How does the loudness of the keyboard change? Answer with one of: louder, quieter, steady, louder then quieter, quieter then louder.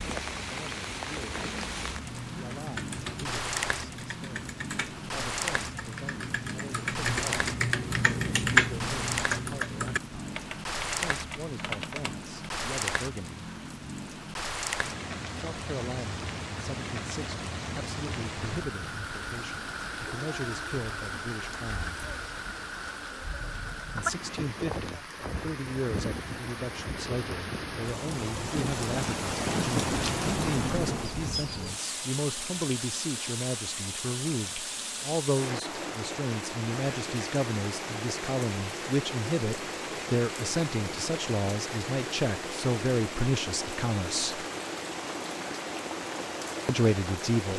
louder then quieter.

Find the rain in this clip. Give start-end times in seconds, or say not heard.
0.0-47.5.